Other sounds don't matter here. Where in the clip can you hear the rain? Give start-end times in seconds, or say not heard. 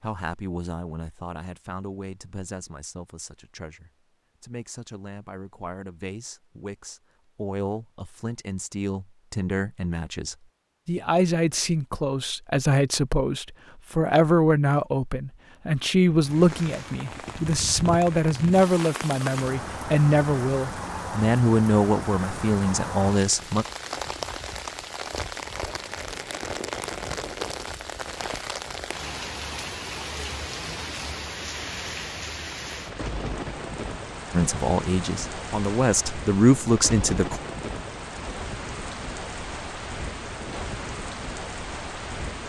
16.2-42.4.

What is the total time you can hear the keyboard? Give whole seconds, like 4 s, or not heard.
not heard.